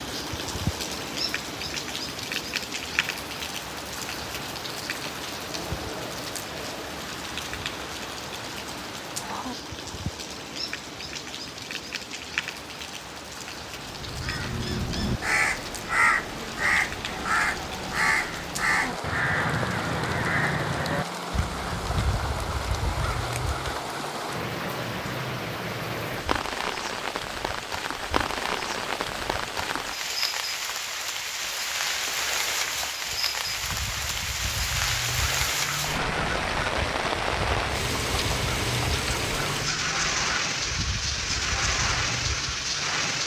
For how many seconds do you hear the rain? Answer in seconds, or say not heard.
43 s.